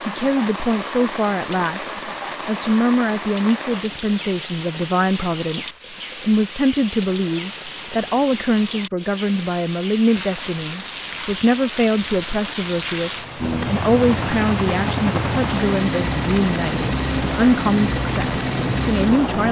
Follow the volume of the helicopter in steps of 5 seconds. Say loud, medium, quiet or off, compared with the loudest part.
off, off, loud, loud.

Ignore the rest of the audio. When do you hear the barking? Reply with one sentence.
You can't hear the barking here.